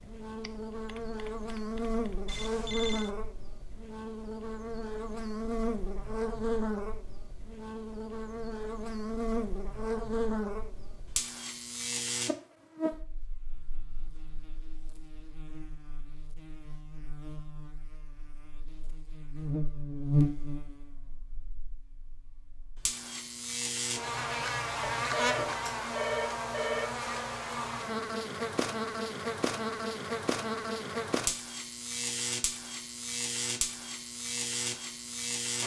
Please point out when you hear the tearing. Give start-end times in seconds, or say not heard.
not heard.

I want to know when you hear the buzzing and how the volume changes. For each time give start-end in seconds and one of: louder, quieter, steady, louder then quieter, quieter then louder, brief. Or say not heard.
0.0-35.6 steady.